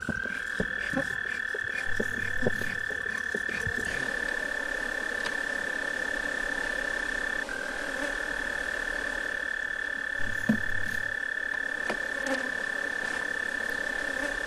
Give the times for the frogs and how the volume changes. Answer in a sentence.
You can hear the frogs from 0.0 to 14.4 s, at a steady volume.